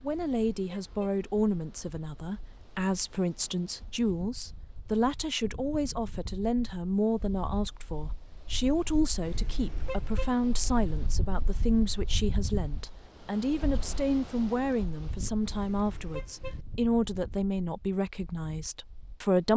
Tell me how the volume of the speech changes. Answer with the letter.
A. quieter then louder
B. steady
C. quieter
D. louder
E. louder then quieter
B.